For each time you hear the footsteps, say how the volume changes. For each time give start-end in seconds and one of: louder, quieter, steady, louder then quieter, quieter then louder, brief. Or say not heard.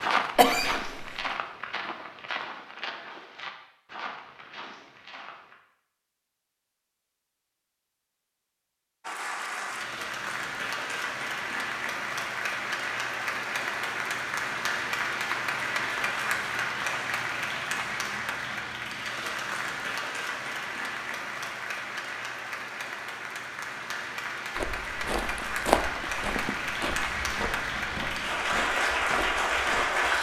0.0-5.5 quieter
24.6-30.1 quieter.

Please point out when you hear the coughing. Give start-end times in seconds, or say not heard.
0.3-1.2.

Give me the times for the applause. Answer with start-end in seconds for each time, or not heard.
9.0-30.1.